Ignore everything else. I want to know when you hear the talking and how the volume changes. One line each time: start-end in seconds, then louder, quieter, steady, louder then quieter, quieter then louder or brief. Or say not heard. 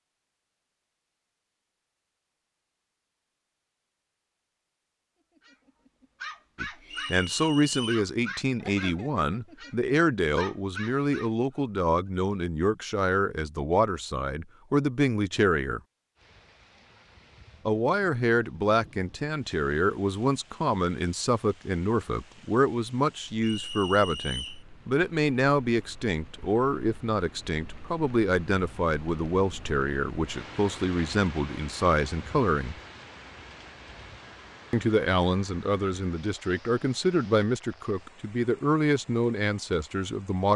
6.6-15.8 steady
17.6-32.8 steady
34.7-40.5 steady.